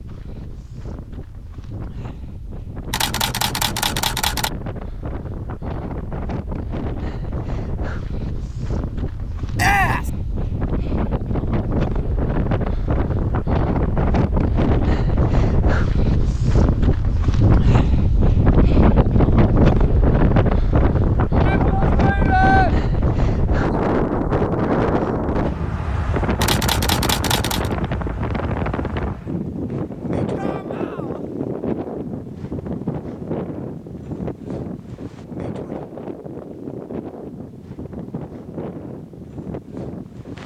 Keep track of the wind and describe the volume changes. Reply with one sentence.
The volume of the wind goes up, then down.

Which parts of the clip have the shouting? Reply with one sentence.
You can hear the shouting from 9.6 to 10.1 s, from 21.4 to 22.7 s and from 30.4 to 31.2 s.